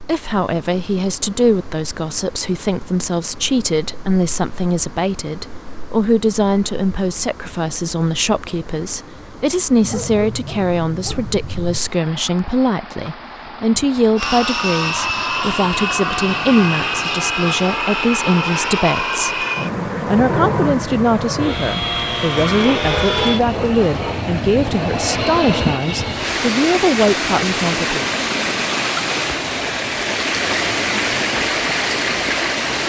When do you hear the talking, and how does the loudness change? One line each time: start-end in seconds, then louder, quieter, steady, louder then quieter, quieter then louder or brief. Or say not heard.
0.0-19.4 steady
20.1-28.1 steady.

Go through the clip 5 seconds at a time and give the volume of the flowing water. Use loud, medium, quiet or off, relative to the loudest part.
quiet, quiet, quiet, quiet, quiet, loud, loud.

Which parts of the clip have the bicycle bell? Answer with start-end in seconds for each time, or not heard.
not heard.